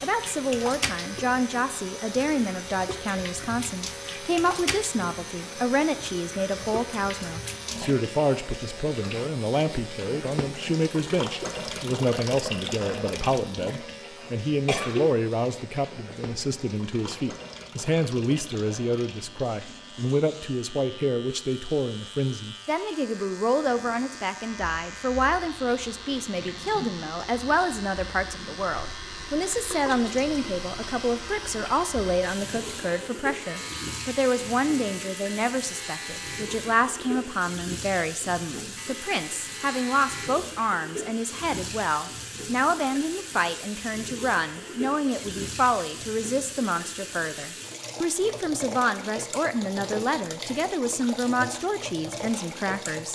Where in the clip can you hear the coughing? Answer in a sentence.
You can hear the coughing from 14.2 to 15.1 s.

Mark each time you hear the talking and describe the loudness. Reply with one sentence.
The talking can be heard from 0.0 to 53.1 s, at a steady volume.